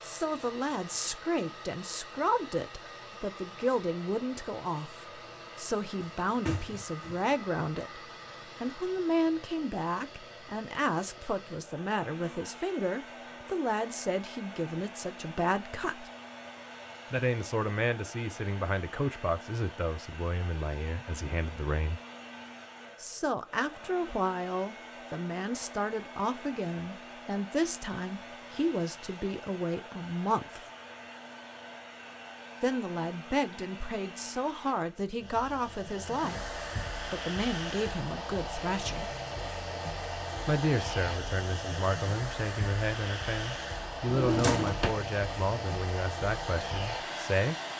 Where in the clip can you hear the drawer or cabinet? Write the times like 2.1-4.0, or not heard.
6.0-7.3, 44.0-45.0.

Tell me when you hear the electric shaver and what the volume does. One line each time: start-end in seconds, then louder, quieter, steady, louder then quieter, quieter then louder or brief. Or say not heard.
not heard.